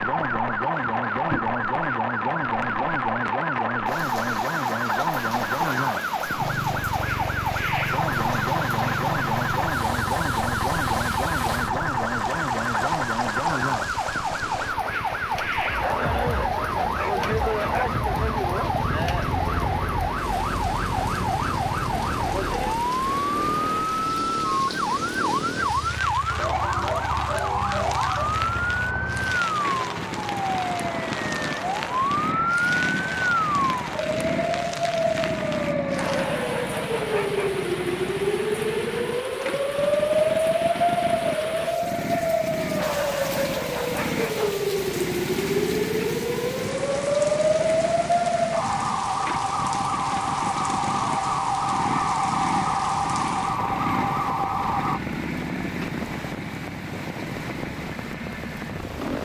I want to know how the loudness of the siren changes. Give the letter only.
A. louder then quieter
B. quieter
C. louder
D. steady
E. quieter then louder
D.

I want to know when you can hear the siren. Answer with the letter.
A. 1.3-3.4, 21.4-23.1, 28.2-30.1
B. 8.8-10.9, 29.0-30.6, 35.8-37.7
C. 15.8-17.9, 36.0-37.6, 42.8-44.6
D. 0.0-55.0
D.